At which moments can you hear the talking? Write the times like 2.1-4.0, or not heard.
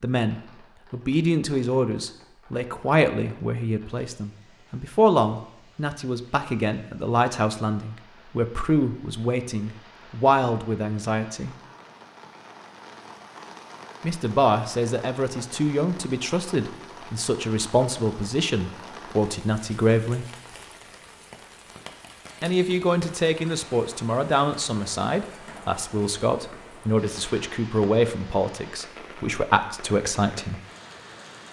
0.0-11.6, 14.0-20.2, 22.4-30.6.